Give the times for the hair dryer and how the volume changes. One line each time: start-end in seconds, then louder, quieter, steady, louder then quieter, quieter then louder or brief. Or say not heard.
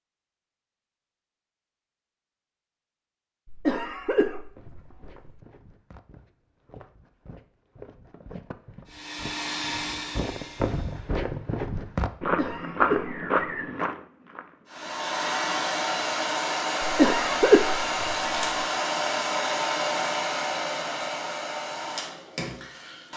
8.8-11.1 brief
14.7-23.1 quieter.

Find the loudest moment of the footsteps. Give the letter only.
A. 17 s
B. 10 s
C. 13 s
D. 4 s
C.